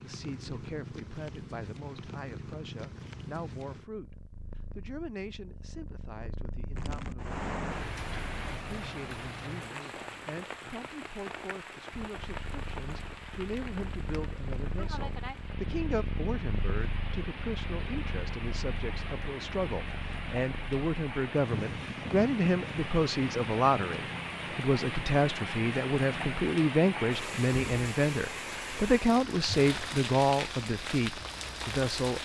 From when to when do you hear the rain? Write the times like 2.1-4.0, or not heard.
6.7-32.2.